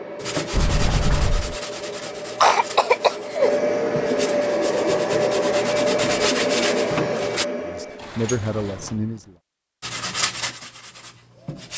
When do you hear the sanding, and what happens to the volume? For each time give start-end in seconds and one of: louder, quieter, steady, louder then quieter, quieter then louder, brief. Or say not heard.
0.2-7.5 quieter then louder
9.8-11.7 brief.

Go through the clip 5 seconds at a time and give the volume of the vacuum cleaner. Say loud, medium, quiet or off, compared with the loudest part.
loud, loud, off.